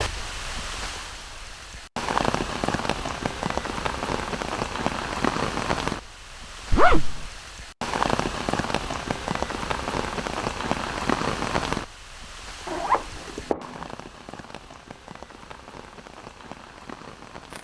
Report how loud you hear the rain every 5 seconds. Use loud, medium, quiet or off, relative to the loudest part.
loud, loud, loud, quiet.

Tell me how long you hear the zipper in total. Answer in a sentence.
You can hear the zipper for 2 seconds altogether.